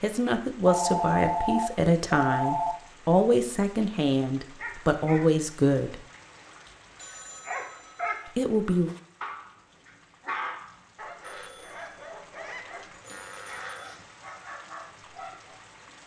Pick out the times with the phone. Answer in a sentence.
The phone can be heard from 0.6 to 2.8 s, from 6.7 to 8.2 s and from 11.2 to 13.9 s.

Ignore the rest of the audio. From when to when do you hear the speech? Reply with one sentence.
You can hear the speech from 0.0 to 6.0 s and from 8.3 to 8.9 s.